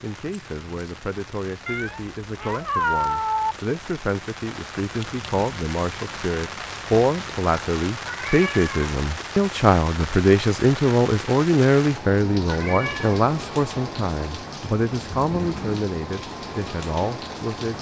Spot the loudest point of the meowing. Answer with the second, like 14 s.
3 s.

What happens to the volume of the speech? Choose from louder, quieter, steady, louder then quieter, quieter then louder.
louder then quieter.